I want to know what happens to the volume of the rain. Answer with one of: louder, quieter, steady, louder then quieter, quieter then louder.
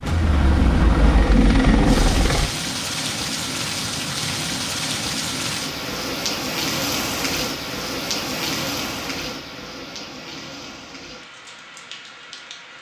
quieter.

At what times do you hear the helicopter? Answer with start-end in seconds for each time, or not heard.
0.0-2.5.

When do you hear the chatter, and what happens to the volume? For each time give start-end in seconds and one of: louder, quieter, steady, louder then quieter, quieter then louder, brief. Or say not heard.
not heard.